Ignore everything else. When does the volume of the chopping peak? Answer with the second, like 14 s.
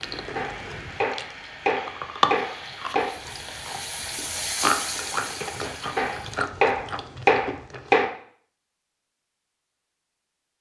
7 s.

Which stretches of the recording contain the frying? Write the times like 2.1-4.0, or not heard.
0.0-6.5.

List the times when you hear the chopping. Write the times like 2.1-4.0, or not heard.
0.3-3.1, 6.0-8.1.